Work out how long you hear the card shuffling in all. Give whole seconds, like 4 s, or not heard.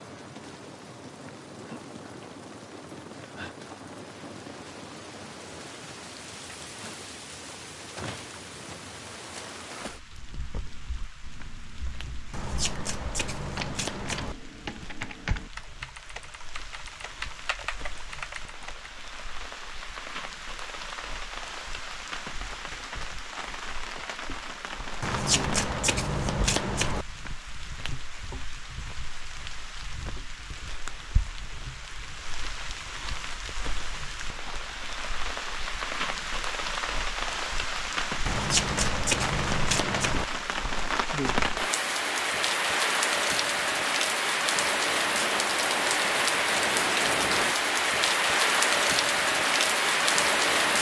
6 s.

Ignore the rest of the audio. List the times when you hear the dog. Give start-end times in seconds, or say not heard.
not heard.